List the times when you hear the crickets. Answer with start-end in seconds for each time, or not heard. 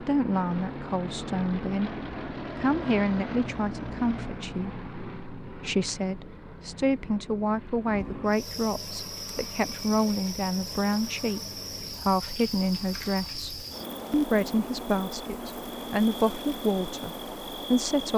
8.2-18.1.